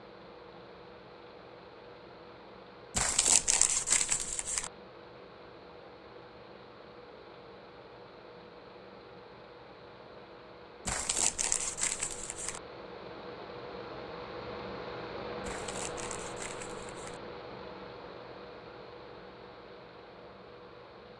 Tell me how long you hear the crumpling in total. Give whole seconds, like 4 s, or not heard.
5 s.